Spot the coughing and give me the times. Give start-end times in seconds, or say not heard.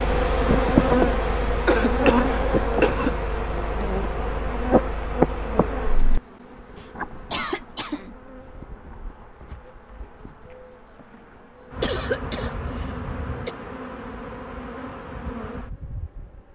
1.6-3.1, 6.8-8.2, 11.8-13.5.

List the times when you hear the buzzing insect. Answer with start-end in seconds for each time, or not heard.
0.0-16.4.